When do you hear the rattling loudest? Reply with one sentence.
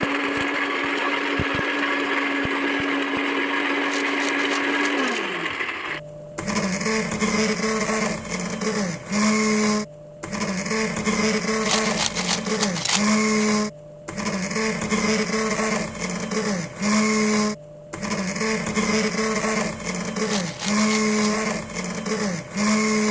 The loudest moment of the rattling is at 12 seconds.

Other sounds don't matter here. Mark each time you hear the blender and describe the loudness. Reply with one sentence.
The blender can be heard from 0.0 to 23.0 s, at a steady volume.